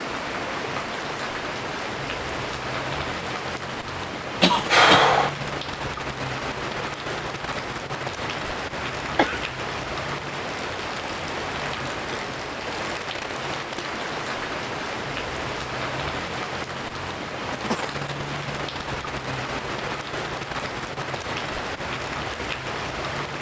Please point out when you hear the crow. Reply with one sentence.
You can't hear the crow here.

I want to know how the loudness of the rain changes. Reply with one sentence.
The loudness of the rain stays about the same.